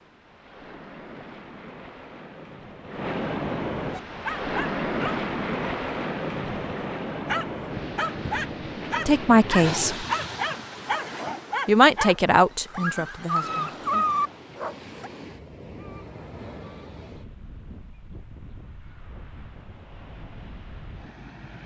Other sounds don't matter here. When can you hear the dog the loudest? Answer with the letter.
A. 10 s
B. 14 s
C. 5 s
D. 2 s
B.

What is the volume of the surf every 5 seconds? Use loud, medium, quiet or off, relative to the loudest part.
loud, loud, medium, quiet, quiet.